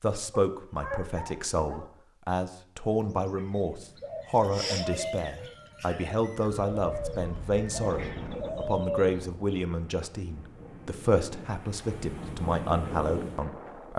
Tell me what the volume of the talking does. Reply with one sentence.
The loudness of the talking stays about the same.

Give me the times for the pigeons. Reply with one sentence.
You can hear the pigeons from 3.0 to 9.2 s.